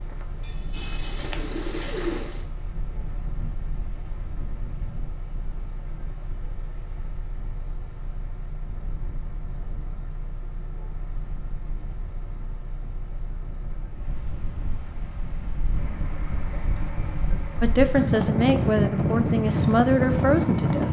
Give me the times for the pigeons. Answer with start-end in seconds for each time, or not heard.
0.0-2.5.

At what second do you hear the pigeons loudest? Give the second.
2 s.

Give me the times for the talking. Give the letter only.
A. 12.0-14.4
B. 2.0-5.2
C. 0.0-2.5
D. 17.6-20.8
D.